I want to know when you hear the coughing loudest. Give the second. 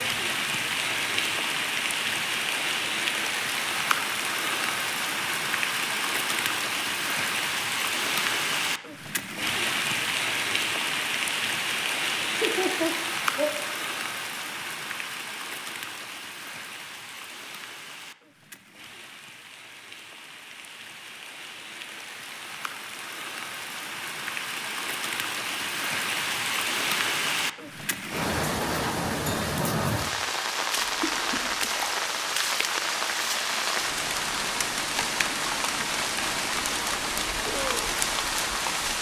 13 s.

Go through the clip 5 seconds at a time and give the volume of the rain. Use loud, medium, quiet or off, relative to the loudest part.
loud, loud, loud, quiet, medium, loud, loud, loud.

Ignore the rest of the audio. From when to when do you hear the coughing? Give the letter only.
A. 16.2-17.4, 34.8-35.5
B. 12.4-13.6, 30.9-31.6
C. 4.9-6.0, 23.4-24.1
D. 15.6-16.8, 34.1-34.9
B.